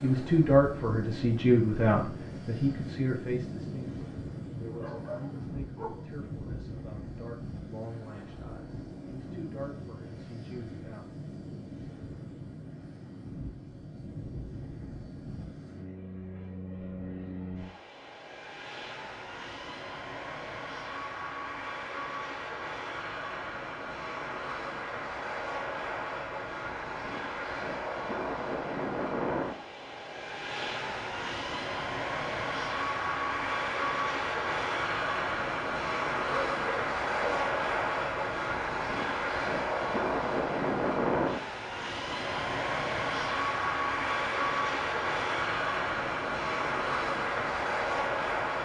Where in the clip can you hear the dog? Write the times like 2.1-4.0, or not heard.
4.6-6.0, 36.3-37.5.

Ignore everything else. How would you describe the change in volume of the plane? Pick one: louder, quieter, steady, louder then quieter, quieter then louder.
louder.